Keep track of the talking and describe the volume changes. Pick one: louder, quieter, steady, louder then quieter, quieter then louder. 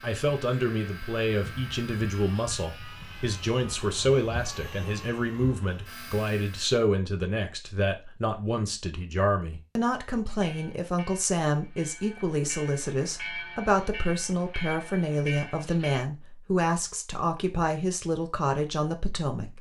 steady.